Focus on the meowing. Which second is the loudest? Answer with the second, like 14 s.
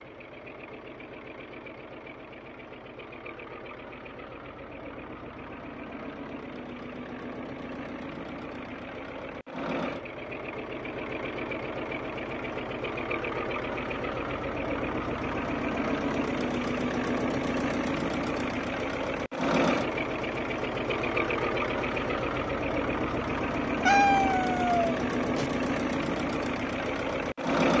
24 s.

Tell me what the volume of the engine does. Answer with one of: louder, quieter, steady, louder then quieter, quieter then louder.
louder.